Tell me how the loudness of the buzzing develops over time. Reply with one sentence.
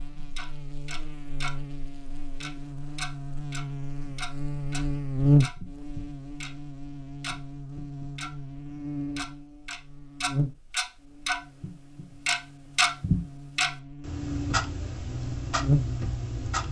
The loudness of the buzzing goes up, then down.